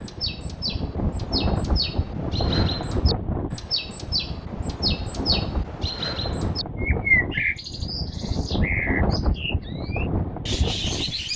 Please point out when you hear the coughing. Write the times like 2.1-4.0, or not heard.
not heard.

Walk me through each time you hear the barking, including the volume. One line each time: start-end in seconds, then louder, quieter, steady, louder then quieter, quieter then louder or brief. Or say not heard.
not heard.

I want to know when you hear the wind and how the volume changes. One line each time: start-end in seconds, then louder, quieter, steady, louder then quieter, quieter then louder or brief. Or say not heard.
0.0-11.3 steady.